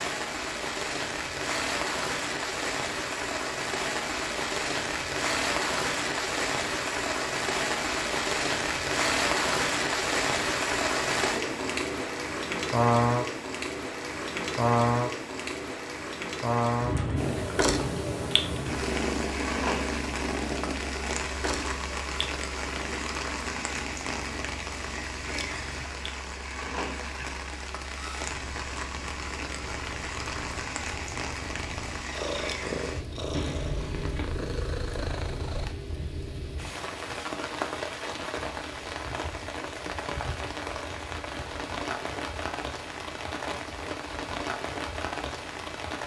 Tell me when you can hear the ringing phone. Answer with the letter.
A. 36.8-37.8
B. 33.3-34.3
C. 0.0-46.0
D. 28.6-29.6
B.